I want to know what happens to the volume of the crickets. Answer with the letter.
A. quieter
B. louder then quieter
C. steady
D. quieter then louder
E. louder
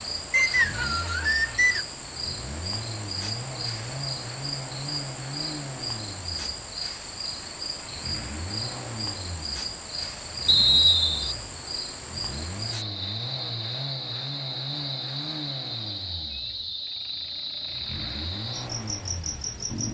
C.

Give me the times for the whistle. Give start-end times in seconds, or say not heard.
0.3-1.9, 10.4-11.3.